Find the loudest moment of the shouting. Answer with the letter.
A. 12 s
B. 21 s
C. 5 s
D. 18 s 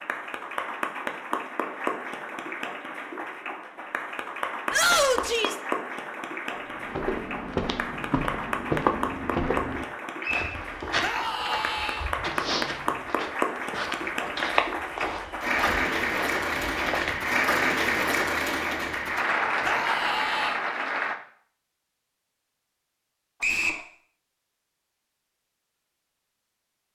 C.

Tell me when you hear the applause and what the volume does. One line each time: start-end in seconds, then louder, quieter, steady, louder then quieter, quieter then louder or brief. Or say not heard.
0.0-21.1 louder.